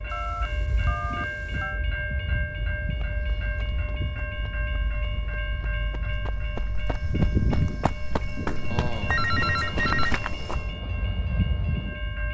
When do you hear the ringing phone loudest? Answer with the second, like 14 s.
9 s.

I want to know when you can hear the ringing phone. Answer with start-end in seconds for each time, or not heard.
0.1-1.8, 8.7-10.2.